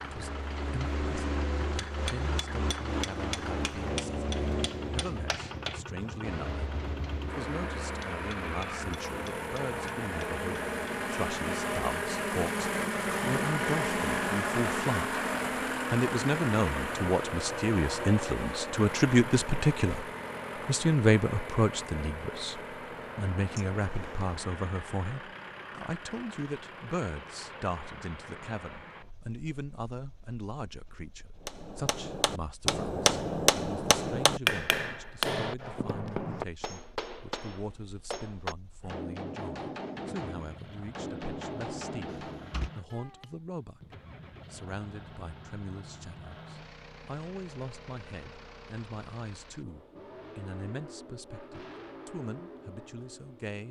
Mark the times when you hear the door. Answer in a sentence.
The door can be heard from 23.5 to 24.4 s and from 42.0 to 42.7 s.